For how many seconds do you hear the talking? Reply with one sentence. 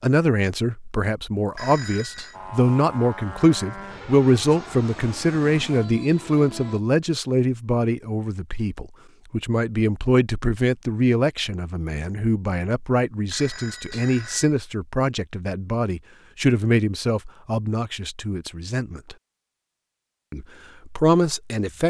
The talking can be heard for 21 seconds in total.